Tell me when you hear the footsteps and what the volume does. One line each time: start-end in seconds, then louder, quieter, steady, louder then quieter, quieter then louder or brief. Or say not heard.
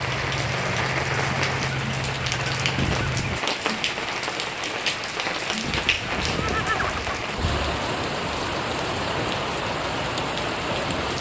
not heard.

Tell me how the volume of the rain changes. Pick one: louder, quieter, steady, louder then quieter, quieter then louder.
steady.